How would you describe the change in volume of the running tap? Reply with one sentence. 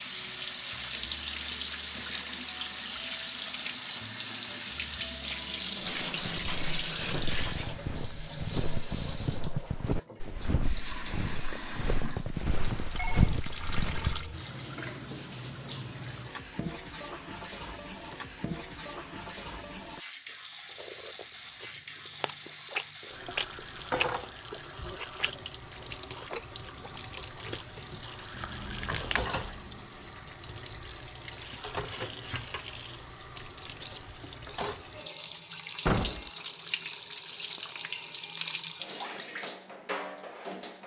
The loudness of the running tap goes down.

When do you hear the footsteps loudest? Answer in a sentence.
The volume of the footsteps peaks at 13 seconds.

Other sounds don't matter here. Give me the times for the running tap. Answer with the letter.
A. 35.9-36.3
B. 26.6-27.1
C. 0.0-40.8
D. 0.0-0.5
C.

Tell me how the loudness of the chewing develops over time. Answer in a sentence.
The volume of the chewing goes up, then down.